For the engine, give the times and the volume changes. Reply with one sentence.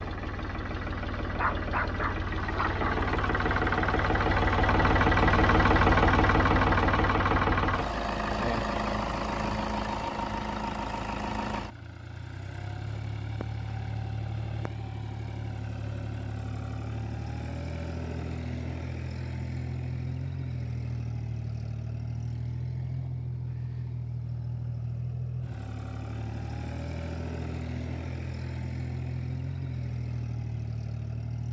The engine can be heard from 0.0 to 31.4 s, getting quieter.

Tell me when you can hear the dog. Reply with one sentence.
The dog can be heard from 1.4 to 2.9 s.